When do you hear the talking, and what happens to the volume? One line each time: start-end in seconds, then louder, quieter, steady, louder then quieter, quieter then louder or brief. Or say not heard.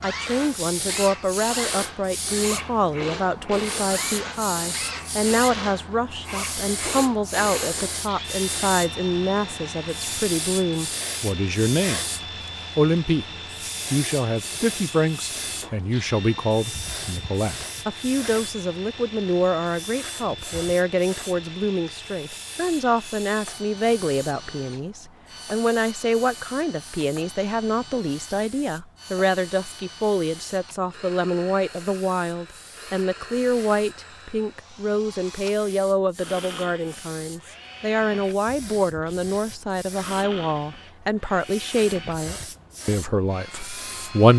0.0-12.0 steady
12.8-13.2 brief
13.9-44.3 steady.